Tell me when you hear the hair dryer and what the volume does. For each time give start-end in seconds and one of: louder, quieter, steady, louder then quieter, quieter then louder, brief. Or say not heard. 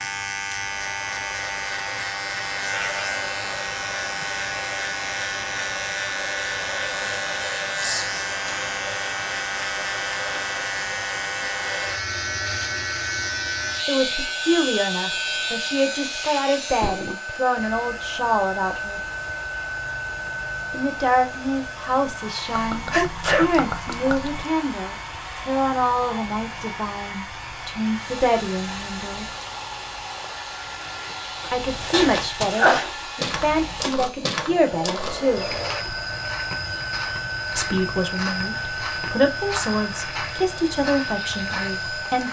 0.0-42.2 steady.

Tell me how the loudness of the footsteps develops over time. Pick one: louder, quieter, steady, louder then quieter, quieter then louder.
steady.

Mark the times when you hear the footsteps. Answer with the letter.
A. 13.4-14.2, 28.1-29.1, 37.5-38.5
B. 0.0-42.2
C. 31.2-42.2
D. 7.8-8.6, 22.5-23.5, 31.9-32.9
C.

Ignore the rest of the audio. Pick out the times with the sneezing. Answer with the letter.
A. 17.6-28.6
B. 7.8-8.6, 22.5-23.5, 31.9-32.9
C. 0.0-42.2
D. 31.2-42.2
B.